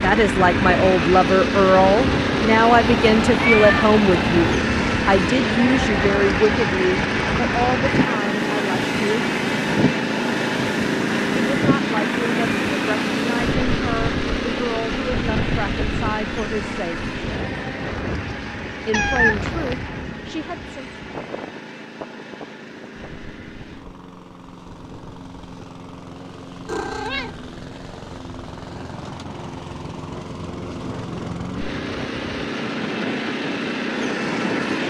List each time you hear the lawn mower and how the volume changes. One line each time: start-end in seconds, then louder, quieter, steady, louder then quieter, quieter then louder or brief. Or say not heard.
0.0-34.8 quieter then louder.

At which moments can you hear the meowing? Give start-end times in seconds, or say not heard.
2.6-4.5, 18.9-19.8, 26.6-27.4.